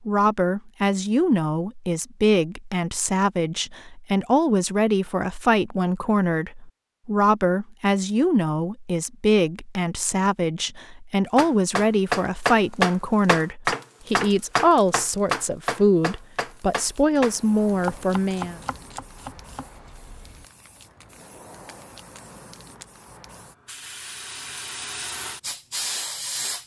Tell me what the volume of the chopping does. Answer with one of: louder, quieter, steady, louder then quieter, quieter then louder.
quieter.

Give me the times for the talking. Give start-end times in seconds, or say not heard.
0.1-18.6.